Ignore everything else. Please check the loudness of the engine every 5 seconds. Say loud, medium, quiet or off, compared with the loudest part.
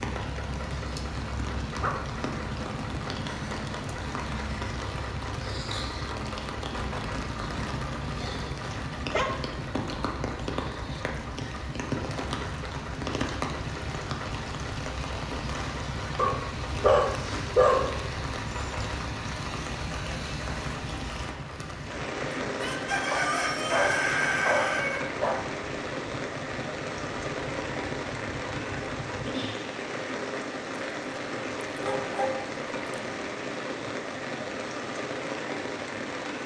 loud, loud, loud, loud, loud, loud, off, off.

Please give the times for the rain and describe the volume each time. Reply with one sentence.
The rain can be heard from 0.0 to 36.4 s, at a steady volume.